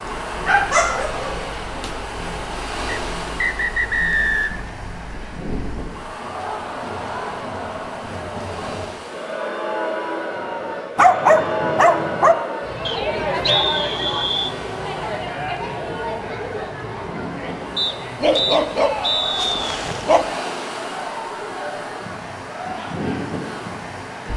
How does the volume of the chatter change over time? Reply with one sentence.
The loudness of the chatter goes up, then down.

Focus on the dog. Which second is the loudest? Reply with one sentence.
The volume of the dog peaks at 11 seconds.